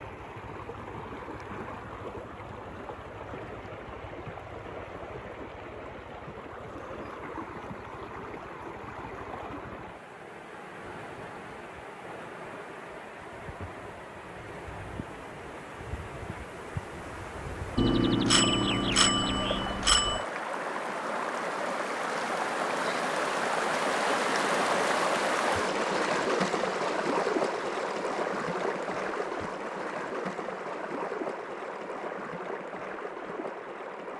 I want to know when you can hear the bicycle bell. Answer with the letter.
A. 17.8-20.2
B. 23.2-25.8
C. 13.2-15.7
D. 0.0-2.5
A.